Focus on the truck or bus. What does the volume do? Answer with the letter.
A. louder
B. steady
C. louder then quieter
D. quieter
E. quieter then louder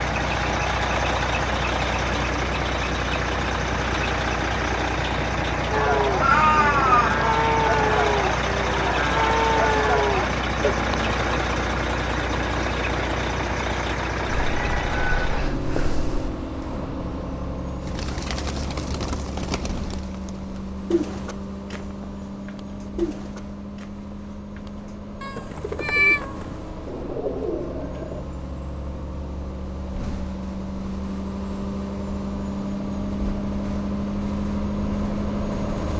E.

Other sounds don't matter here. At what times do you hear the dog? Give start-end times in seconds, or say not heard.
not heard.